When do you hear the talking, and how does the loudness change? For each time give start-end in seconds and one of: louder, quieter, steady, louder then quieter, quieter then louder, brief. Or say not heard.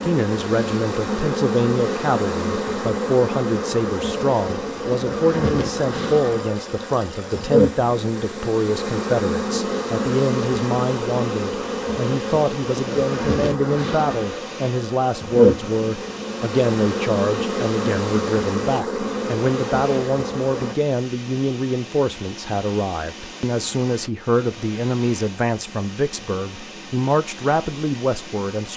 0.0-28.7 steady.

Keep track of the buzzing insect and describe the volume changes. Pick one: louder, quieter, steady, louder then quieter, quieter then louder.
steady.